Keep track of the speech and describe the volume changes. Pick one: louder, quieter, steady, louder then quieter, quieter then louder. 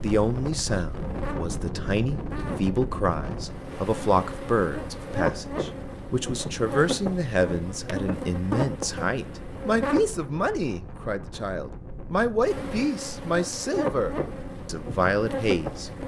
steady.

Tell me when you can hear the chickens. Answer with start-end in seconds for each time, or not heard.
not heard.